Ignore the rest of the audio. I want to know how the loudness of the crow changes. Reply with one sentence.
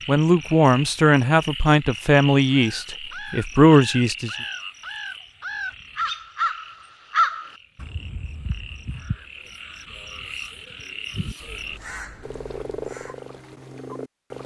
The loudness of the crow goes up, then down.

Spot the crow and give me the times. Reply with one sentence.
You can hear the crow from 2.5 to 13.2 s.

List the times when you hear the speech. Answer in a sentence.
The speech can be heard from 0.1 to 4.3 s.